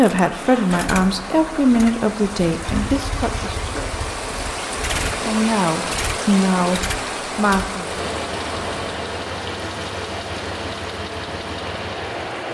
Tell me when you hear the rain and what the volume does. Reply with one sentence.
The rain can be heard from 0.1 to 12.4 s, getting louder then quieter.